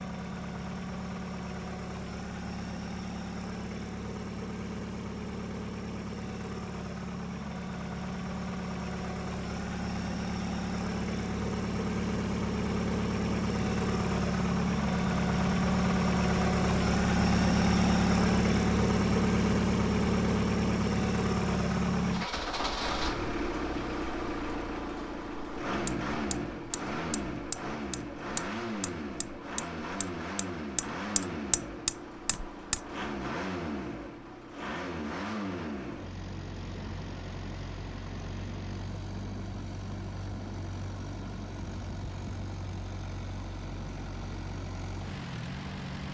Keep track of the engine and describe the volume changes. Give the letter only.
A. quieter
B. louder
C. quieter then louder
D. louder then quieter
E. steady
D.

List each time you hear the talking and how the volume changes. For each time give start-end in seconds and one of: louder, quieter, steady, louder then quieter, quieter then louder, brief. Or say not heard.
not heard.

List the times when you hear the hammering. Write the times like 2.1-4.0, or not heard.
25.9-32.8.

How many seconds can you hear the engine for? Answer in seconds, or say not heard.
46 s.